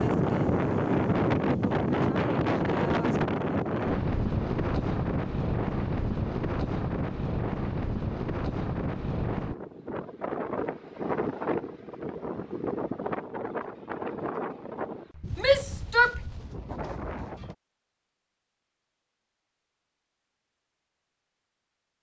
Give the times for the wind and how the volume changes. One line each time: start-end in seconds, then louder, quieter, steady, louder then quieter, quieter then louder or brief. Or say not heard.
0.0-17.6 quieter.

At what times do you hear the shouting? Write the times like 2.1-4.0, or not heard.
15.3-16.2.